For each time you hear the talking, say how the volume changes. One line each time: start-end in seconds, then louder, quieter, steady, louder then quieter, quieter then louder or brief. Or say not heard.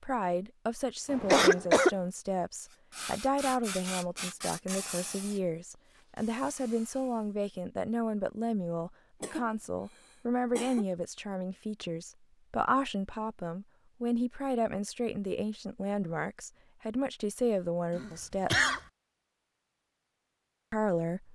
0.0-18.7 steady
20.7-21.3 brief.